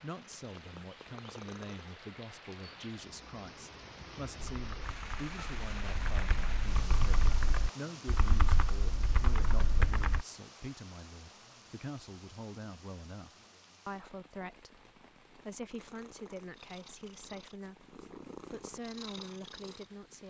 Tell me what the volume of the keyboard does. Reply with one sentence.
The volume of the keyboard goes up.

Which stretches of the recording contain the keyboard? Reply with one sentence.
You can hear the keyboard from 4.5 to 10.2 s.